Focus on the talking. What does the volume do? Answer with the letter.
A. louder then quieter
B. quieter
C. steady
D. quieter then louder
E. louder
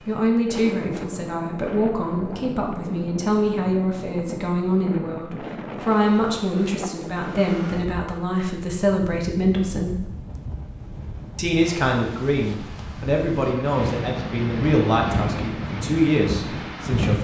C.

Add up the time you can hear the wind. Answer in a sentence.
You can hear the wind for 17 seconds altogether.